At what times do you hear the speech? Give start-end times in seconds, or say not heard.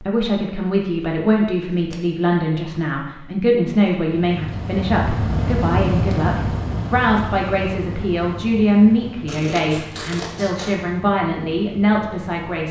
0.0-12.6.